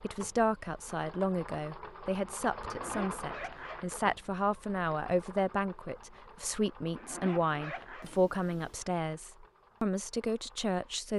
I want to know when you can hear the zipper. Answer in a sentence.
The zipper can be heard from 2.6 to 3.9 s and from 7.0 to 8.1 s.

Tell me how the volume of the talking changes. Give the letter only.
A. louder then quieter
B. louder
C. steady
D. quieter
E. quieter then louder
C.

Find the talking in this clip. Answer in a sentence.
You can hear the talking from 0.0 to 11.1 s.